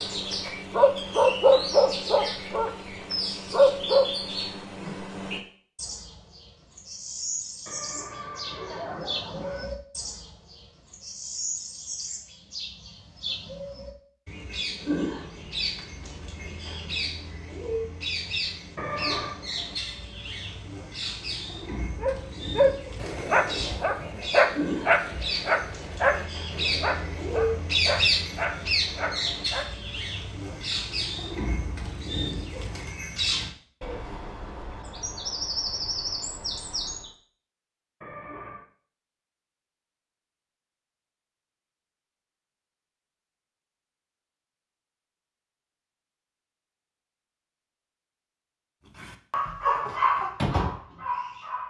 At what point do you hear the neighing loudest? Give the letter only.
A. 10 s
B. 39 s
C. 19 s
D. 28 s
C.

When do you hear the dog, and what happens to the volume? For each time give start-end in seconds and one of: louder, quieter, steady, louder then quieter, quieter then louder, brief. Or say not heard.
0.0-2.7 brief
3.5-4.0 brief
22.0-29.6 quieter
49.0-51.6 brief.